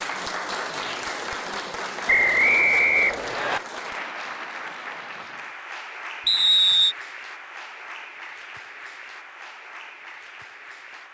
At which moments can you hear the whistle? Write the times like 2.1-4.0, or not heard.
2.0-3.6, 6.2-7.0.